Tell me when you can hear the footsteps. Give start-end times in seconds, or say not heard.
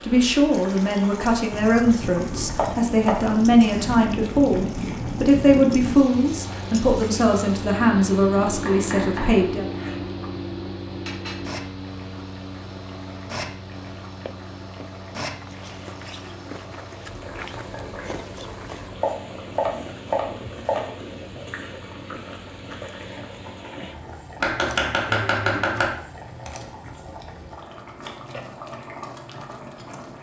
14.2-18.9.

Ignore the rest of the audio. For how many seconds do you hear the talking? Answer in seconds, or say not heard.
10 s.